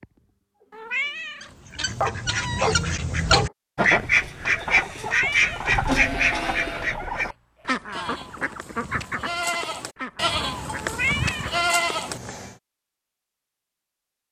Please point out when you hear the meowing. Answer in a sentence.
You can hear the meowing from 0.7 to 2.0 s, from 5.0 to 5.7 s and from 10.8 to 12.6 s.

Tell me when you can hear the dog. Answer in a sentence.
You can hear the dog from 0.0 to 1.1 s and from 1.9 to 3.5 s.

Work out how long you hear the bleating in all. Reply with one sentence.
The bleating can be heard for 6 seconds in total.